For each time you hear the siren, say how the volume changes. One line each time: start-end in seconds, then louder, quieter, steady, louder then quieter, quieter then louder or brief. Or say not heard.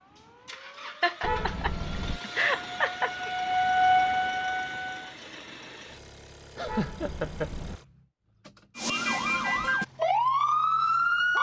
0.0-5.2 louder
8.8-11.3 brief.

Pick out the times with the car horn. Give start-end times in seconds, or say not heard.
1.2-2.2, 6.7-7.8.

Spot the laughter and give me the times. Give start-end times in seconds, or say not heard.
1.0-3.3, 6.5-7.5.